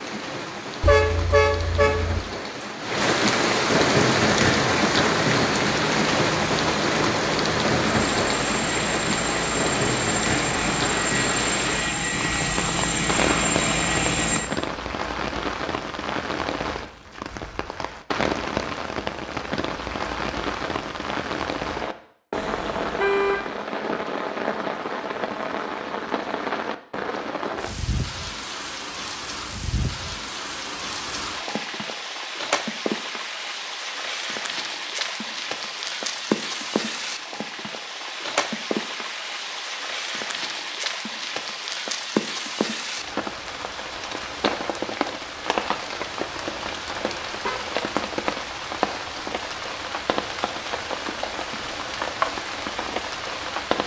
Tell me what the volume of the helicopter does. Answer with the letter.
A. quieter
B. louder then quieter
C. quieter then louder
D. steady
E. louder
E.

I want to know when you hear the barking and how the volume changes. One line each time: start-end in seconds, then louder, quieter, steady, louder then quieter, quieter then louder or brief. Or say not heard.
not heard.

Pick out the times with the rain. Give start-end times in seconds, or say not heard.
0.0-53.8.